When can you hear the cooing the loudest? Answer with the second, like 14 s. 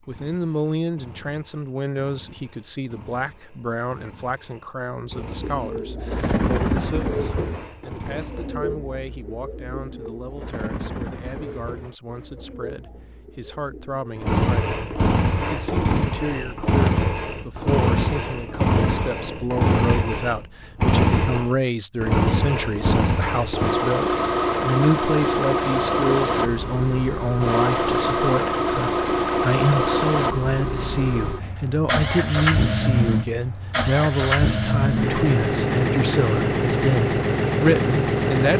7 s.